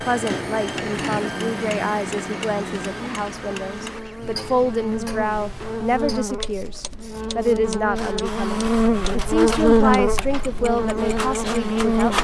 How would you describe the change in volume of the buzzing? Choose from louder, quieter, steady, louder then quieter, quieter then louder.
louder.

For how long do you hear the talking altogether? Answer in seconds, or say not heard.
12 s.